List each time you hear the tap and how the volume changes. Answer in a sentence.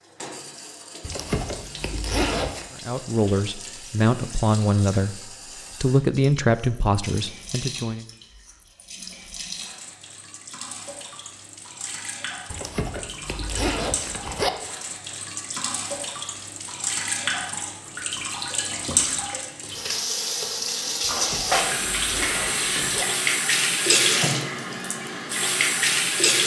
You can hear the tap from 0.0 to 26.4 s, getting louder.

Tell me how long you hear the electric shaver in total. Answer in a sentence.
You can't hear the electric shaver here.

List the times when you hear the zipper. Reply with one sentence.
The zipper can be heard from 1.0 to 2.6 s, from 12.5 to 14.5 s and from 21.1 to 23.1 s.